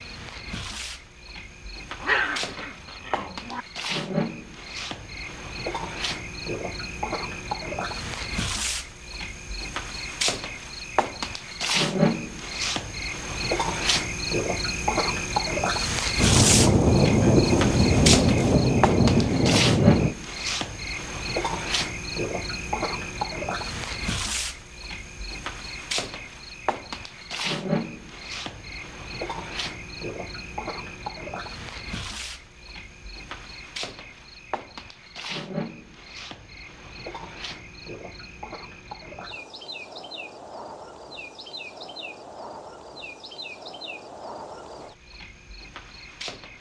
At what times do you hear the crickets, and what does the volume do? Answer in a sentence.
You can hear the crickets from 0.0 to 46.5 s, getting louder then quieter.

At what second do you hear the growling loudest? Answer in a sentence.
The loudest moment of the growling is at 2 seconds.